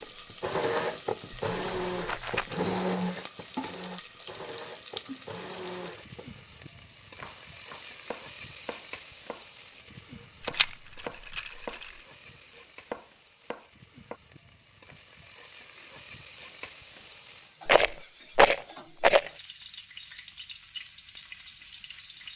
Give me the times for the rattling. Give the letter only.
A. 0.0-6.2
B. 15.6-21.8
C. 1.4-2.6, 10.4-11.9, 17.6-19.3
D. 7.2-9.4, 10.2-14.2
C.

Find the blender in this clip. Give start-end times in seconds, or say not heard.
0.0-6.2.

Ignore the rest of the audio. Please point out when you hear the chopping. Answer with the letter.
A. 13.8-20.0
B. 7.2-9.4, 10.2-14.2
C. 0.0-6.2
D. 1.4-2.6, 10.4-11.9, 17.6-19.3
B.